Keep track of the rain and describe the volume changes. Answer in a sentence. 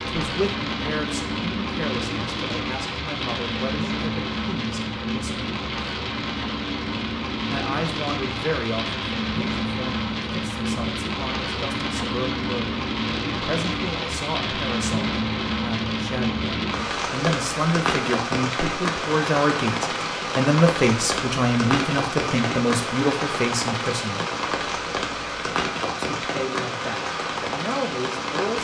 The loudness of the rain stays about the same.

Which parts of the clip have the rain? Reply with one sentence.
You can hear the rain from 0.0 to 28.5 s.